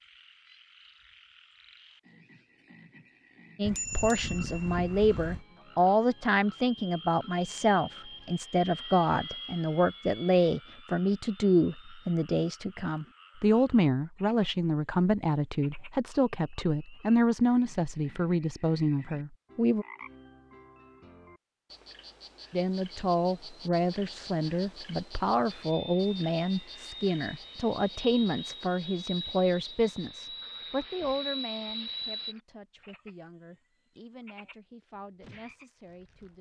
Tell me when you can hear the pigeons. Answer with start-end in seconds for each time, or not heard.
not heard.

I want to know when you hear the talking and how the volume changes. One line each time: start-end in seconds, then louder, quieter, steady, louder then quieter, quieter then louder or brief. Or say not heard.
3.5-19.9 steady
22.5-36.3 quieter.